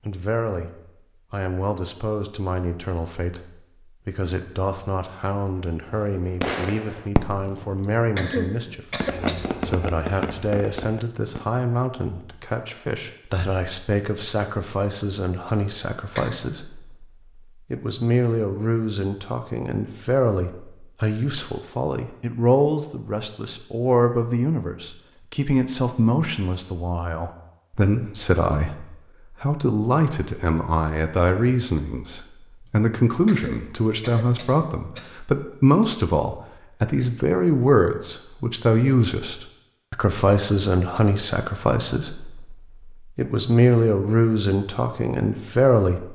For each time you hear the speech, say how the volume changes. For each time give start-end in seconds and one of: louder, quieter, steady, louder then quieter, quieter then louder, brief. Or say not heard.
0.1-0.7 brief
1.3-46.0 louder.